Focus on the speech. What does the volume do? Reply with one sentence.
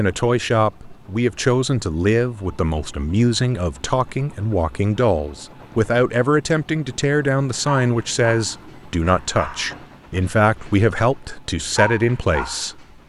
The volume of the speech stays about the same.